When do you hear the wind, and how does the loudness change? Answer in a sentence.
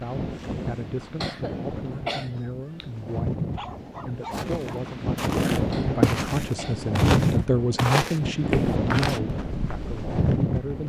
The wind can be heard from 0.0 to 10.8 s, getting louder.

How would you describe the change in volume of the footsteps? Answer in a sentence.
The loudness of the footsteps goes up, then down.